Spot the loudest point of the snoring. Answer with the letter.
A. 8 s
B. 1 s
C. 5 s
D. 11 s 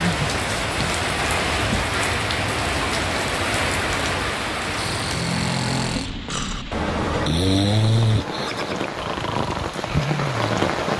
A.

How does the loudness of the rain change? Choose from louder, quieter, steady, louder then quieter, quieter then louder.
quieter then louder.